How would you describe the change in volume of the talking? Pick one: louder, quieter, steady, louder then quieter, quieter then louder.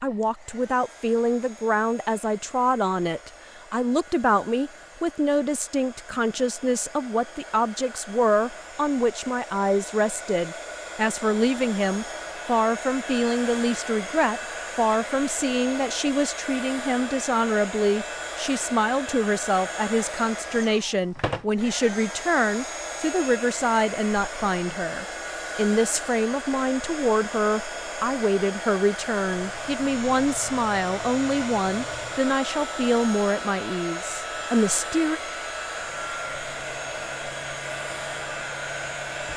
steady.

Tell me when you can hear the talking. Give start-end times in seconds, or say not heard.
0.0-35.2.